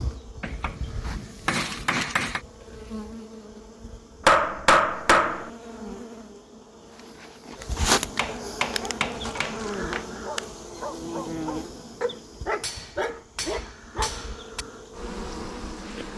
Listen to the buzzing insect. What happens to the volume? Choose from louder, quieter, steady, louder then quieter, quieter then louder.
louder then quieter.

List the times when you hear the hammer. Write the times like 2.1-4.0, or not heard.
0.4-2.4, 4.2-5.5, 8.2-10.1, 12.6-14.7.